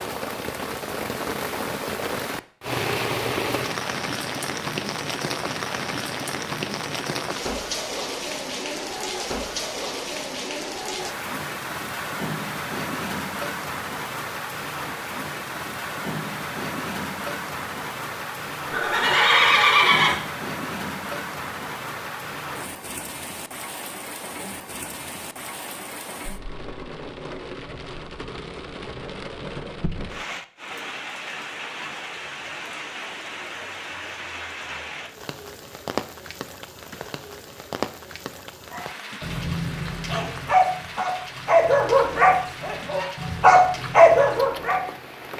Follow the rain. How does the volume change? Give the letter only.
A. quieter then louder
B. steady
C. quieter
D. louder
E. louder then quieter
C.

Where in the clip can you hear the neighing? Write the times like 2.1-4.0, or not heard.
18.7-20.2.